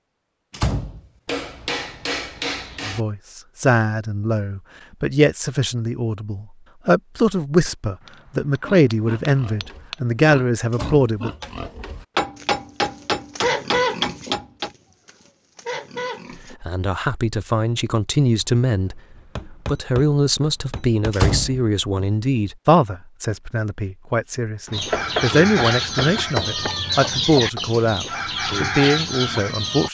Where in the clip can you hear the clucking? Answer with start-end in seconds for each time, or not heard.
24.7-29.8.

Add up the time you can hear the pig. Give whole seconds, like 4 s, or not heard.
8 s.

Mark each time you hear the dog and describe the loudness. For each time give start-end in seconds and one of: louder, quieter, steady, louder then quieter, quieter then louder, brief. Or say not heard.
not heard.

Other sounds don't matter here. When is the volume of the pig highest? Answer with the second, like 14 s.
14 s.